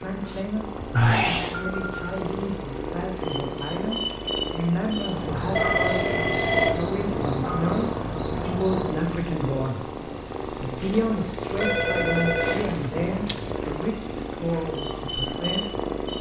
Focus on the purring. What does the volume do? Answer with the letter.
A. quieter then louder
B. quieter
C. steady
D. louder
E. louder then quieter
C.